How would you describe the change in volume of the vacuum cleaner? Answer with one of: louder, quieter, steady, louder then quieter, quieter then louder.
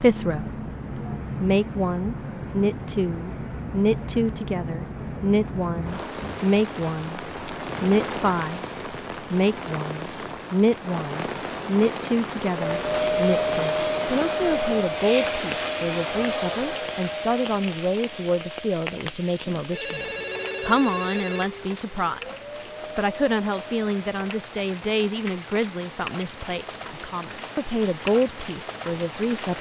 quieter.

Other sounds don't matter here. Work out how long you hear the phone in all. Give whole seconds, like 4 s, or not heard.
2 s.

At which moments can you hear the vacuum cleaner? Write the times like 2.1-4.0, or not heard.
12.4-24.4.